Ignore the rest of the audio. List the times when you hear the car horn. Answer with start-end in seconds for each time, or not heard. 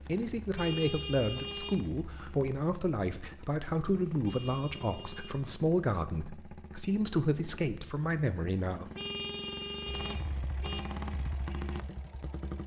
0.6-1.8, 4.2-5.3, 8.9-10.8.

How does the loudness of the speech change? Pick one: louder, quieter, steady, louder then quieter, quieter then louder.
steady.